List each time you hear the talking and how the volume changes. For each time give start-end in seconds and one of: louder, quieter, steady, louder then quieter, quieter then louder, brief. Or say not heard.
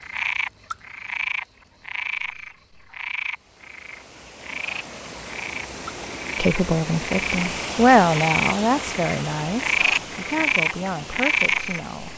6.3-12.1 louder then quieter.